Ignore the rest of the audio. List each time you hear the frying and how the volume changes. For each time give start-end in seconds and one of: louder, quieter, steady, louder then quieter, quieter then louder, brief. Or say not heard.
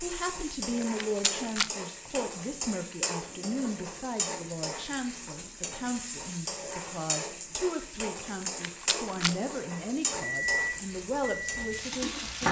0.0-12.4 steady.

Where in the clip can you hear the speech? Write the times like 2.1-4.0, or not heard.
0.0-12.4.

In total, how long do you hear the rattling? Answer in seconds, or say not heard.
2 s.